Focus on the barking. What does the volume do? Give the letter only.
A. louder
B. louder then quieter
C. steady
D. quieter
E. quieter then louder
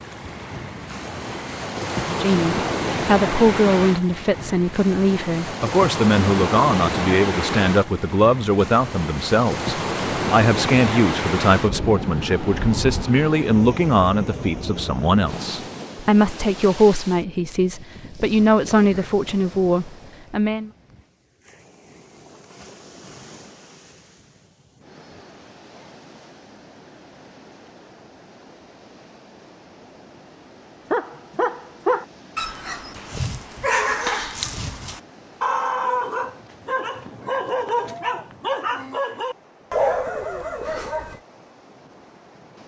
C.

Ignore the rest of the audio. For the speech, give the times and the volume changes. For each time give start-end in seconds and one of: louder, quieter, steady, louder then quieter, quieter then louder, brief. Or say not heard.
1.9-20.7 steady.